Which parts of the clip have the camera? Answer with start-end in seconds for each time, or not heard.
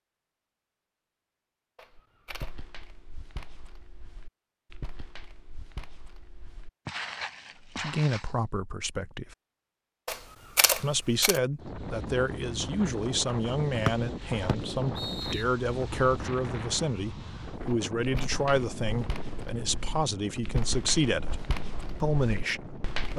1.8-2.5, 10.1-11.4, 17.6-18.4.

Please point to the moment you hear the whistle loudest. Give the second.
14 s.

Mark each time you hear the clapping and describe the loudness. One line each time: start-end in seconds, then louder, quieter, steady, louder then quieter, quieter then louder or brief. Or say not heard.
not heard.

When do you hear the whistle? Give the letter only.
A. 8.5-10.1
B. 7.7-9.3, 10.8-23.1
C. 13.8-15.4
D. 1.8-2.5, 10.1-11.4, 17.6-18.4
C.